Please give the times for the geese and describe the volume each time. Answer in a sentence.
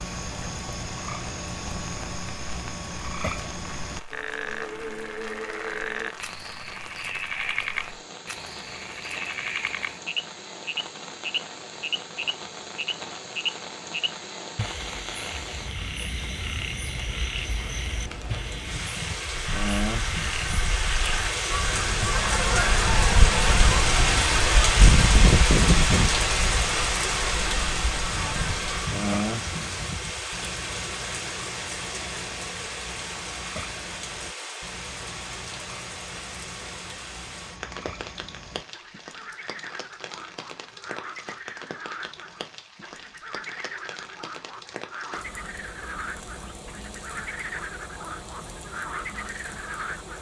You can hear the geese from 19.4 to 28.9 s, getting louder then quieter.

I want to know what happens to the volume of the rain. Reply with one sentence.
The volume of the rain goes up, then down.